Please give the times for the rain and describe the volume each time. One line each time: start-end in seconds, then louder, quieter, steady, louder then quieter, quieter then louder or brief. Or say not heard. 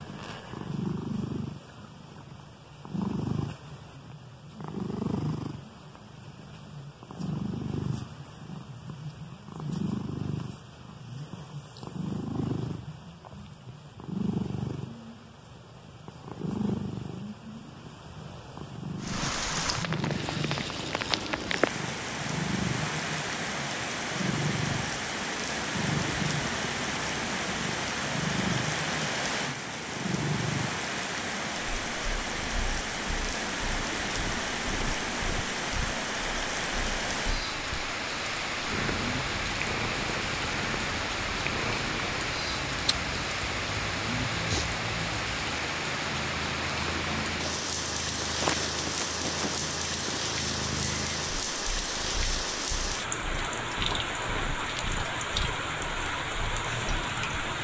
18.9-57.5 steady.